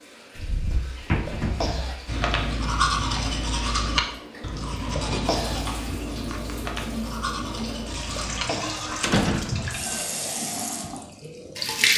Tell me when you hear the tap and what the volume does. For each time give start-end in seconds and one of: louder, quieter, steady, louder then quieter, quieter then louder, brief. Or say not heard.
0.0-11.9 louder.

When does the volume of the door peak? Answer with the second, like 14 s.
9 s.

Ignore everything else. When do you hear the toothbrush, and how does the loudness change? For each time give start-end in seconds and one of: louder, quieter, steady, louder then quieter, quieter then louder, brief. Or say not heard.
2.0-10.1 quieter.